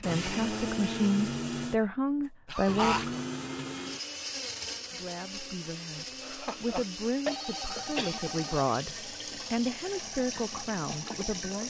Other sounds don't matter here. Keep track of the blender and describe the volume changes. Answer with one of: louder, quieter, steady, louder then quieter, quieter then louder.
quieter.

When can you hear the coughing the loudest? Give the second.
3 s.